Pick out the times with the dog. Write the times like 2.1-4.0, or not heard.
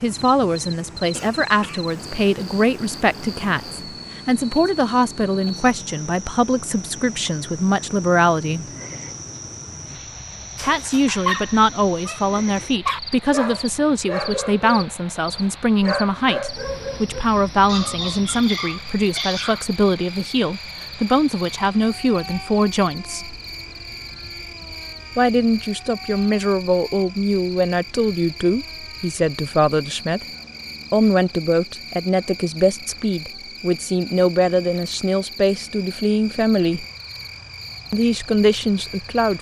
10.6-14.9, 15.8-19.6.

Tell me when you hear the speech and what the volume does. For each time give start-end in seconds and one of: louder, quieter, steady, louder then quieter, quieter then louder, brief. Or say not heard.
0.0-8.7 steady
10.6-23.4 steady
25.1-30.2 steady
30.9-36.9 steady
37.9-39.3 brief.